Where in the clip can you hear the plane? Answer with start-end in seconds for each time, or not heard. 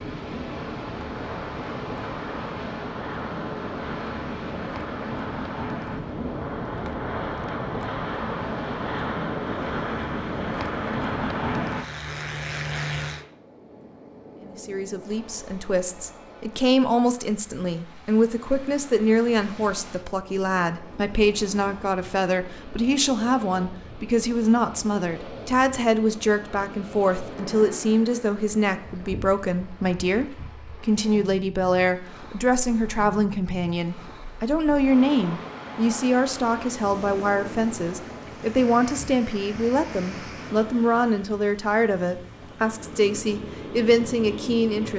0.0-13.2.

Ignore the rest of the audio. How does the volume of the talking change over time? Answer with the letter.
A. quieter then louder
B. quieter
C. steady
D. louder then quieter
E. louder
C.